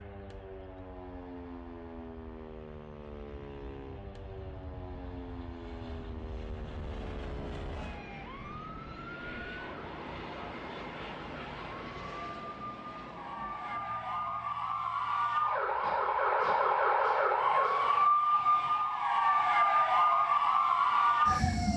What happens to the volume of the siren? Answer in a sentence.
The volume of the siren goes up.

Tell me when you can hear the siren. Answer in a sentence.
The siren can be heard from 0.0 to 21.7 s.